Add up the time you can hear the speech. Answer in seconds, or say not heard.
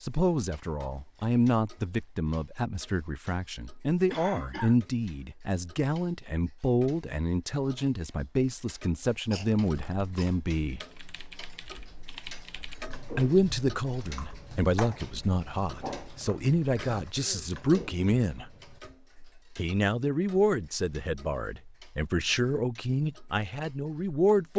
21 s.